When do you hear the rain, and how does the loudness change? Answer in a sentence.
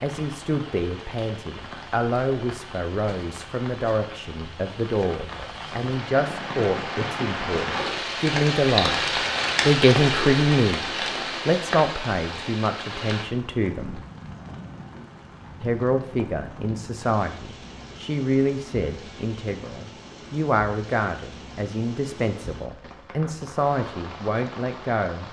You can hear the rain from 0.0 to 25.2 s, getting louder then quieter.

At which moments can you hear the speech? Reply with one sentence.
You can hear the speech from 0.0 to 14.0 s and from 15.6 to 25.2 s.